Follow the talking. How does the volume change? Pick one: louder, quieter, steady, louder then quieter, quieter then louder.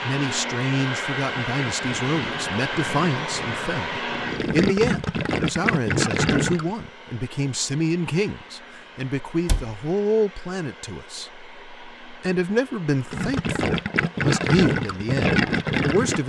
steady.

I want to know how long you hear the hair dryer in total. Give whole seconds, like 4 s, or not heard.
16 s.